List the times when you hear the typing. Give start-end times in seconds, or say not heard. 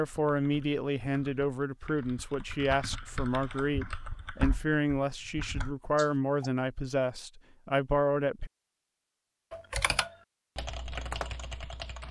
0.1-6.5, 9.5-12.0.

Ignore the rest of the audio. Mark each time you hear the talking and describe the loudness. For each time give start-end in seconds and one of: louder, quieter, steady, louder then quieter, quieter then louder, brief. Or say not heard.
0.0-8.5 steady.